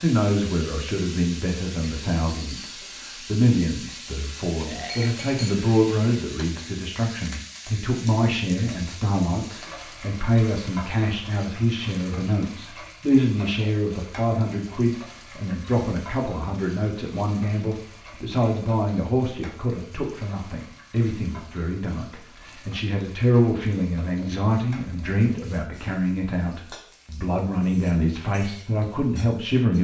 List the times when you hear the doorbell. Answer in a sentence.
The doorbell can't be heard in this clip.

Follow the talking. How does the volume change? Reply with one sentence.
The loudness of the talking stays about the same.